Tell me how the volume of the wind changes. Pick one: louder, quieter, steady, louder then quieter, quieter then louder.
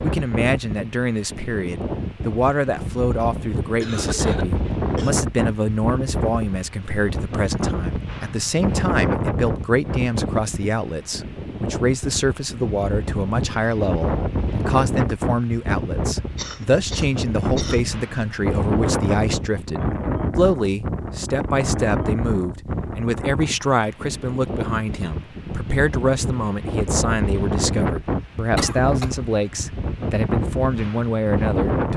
steady.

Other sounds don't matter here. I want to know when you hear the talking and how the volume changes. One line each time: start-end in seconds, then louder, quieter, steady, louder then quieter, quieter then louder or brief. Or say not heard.
0.0-31.9 steady.